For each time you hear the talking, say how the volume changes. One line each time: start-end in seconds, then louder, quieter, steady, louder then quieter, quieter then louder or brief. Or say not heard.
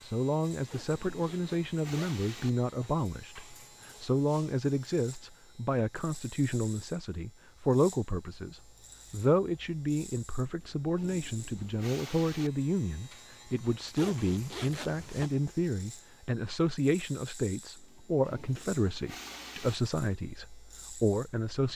0.0-21.7 steady.